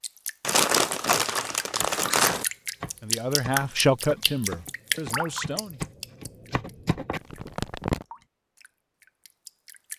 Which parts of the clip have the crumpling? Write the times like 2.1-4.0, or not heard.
0.4-2.5, 7.2-8.1.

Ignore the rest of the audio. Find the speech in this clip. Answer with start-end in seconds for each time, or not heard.
3.0-5.8.